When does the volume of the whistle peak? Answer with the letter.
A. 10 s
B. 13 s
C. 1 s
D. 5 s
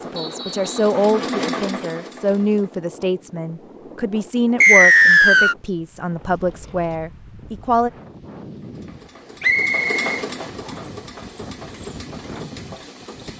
D.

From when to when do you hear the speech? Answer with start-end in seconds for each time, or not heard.
0.0-7.9.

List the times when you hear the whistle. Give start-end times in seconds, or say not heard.
0.1-0.9, 4.6-5.5, 9.4-10.1.